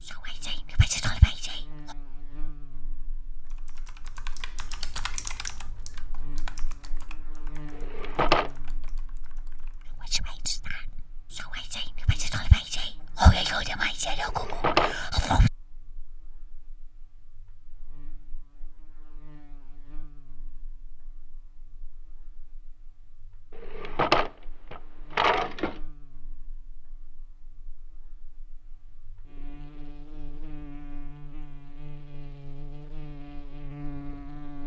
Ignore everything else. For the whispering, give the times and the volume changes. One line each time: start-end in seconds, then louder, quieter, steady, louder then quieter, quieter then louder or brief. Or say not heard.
0.0-1.9 brief
10.1-15.5 louder then quieter.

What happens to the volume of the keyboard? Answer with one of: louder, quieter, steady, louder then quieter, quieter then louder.
quieter.